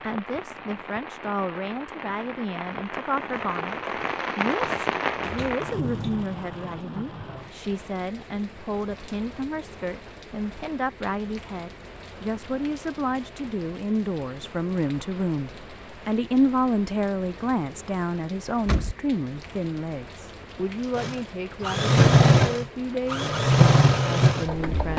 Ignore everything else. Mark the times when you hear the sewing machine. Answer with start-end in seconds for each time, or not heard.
20.9-24.9.